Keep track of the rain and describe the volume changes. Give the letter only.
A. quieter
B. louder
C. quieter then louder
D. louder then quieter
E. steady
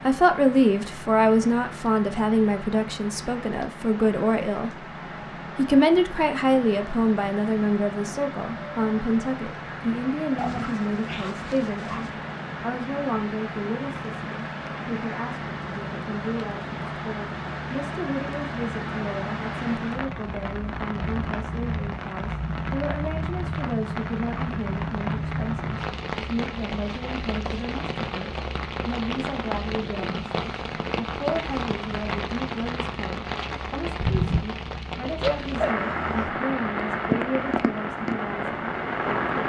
B.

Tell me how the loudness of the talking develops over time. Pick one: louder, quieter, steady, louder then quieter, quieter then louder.
quieter.